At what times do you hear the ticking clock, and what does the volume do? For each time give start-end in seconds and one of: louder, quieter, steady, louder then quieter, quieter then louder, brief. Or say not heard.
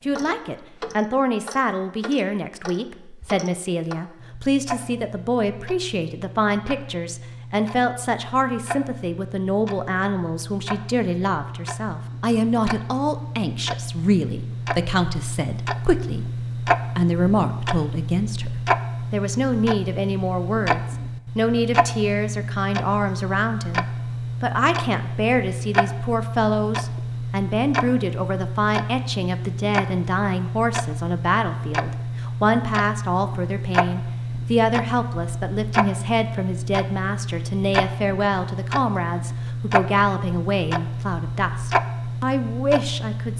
0.0-43.3 louder.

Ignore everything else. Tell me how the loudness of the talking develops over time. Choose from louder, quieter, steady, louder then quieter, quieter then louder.
steady.